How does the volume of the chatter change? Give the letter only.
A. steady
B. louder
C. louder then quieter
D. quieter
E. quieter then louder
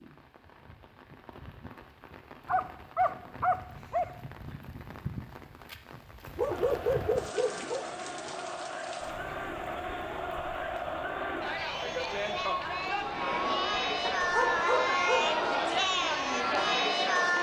B.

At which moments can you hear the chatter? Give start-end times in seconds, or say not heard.
6.5-17.3.